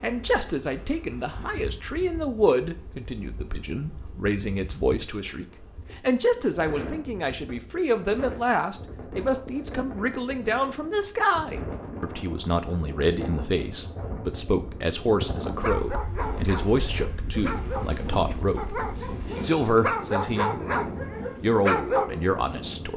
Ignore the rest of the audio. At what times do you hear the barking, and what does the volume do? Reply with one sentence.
You can hear the barking from 15.5 to 22.2 s, getting louder.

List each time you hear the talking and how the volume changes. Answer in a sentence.
The talking can be heard from 0.0 to 20.6 s, at a steady volume; and briefly from 21.4 to 22.9 s.